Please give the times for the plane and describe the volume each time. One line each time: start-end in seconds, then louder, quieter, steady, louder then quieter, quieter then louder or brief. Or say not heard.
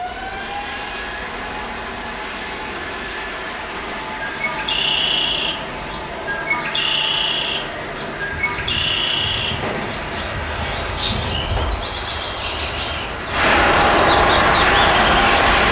0.0-15.6 louder.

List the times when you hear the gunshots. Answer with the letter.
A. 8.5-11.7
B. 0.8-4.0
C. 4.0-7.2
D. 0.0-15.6
A.